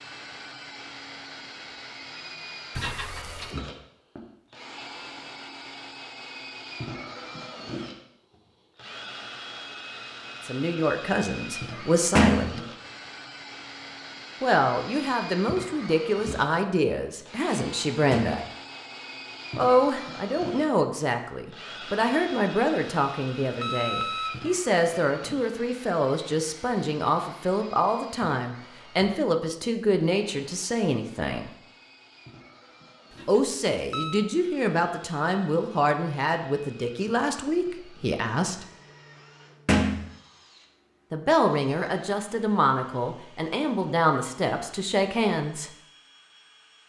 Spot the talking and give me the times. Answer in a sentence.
The talking can be heard from 10.4 to 12.6 s, from 14.4 to 18.4 s, from 19.6 to 31.5 s, from 33.2 to 38.6 s and from 41.1 to 45.7 s.